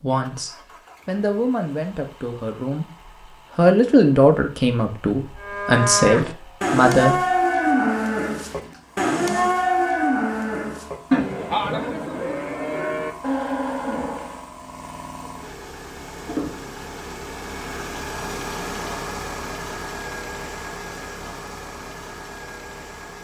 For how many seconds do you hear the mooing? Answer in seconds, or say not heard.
9 s.